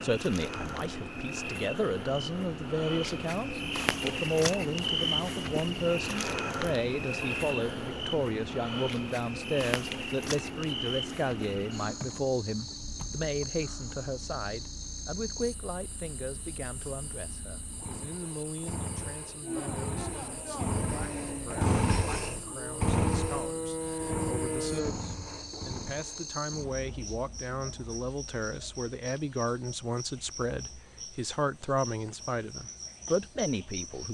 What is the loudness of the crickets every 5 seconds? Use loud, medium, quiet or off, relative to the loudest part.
loud, loud, medium, quiet, quiet, medium, medium.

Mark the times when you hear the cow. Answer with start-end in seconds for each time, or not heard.
19.4-24.9.